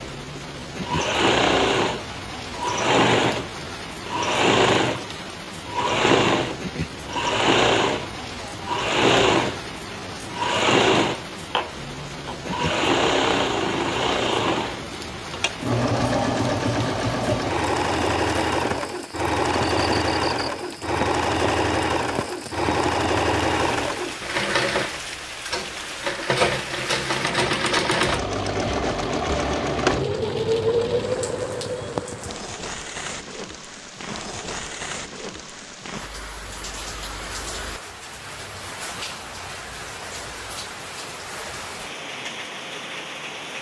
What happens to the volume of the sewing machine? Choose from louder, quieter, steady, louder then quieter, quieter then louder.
steady.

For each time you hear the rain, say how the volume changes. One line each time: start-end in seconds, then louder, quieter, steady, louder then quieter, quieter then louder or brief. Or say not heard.
0.0-43.5 steady.